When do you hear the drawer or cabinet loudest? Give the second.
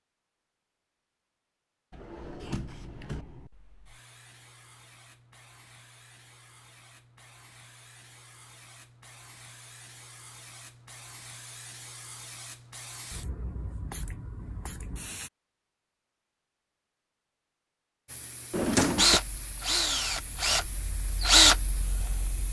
19 s.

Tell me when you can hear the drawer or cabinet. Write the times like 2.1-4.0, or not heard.
1.9-3.2, 18.5-19.2.